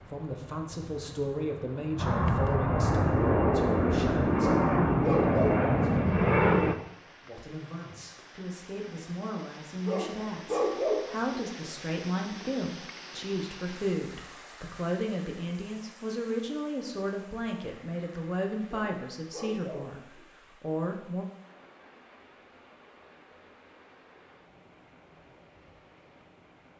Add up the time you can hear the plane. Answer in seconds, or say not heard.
7 s.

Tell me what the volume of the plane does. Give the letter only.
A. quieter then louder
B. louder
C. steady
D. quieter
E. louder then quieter
B.